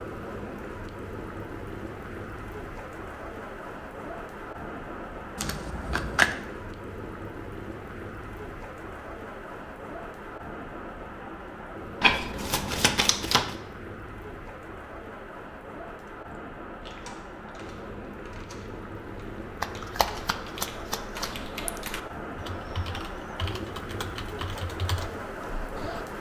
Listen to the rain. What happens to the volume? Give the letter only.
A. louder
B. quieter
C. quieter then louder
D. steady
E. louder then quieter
D.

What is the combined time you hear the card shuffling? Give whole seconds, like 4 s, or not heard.
4 s.